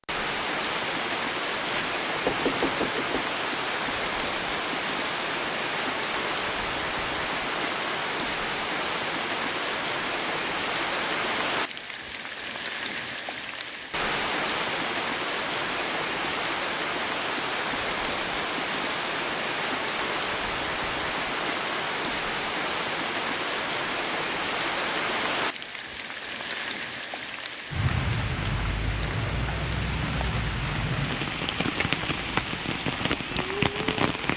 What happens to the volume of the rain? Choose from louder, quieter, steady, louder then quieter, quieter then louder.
steady.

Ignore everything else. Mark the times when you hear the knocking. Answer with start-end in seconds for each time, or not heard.
1.6-3.2.